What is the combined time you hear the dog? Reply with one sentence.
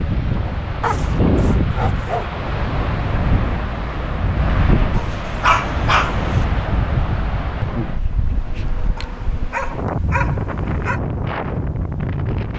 You can hear the dog for 5 seconds altogether.